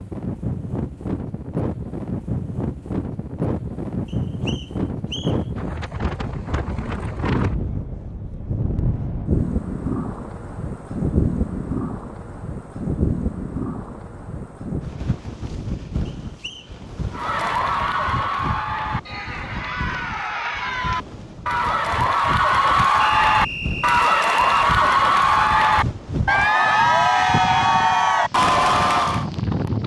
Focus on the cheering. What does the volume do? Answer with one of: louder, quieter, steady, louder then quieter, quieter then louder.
louder.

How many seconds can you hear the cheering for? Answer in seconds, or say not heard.
12 s.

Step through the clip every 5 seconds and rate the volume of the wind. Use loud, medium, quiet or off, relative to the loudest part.
loud, loud, loud, medium, medium, loud.